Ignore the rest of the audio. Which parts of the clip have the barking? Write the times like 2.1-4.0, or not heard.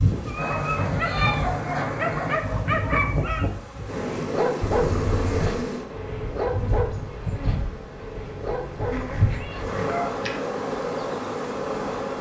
0.2-10.4.